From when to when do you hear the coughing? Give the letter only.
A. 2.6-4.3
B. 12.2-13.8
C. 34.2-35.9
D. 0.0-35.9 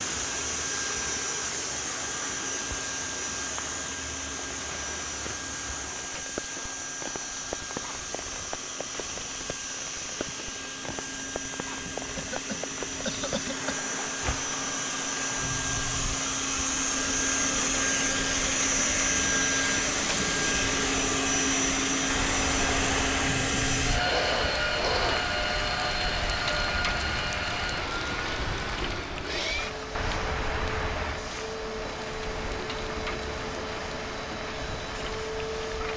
B.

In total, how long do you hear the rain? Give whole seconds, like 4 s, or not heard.
36 s.